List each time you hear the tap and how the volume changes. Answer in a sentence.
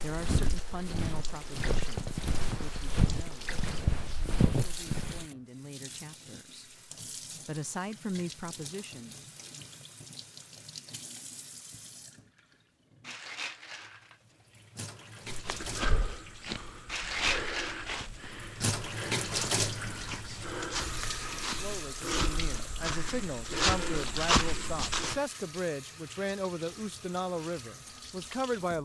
You can hear the tap from 0.0 to 28.7 s, getting louder then quieter.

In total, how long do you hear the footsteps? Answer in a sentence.
The footsteps can be heard for 15 seconds in total.